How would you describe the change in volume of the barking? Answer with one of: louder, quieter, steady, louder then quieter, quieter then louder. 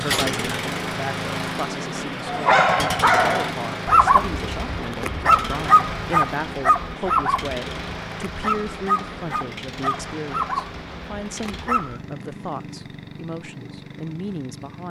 quieter.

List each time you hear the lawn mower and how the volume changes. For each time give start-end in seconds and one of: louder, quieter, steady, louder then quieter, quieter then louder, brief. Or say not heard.
0.0-14.8 quieter.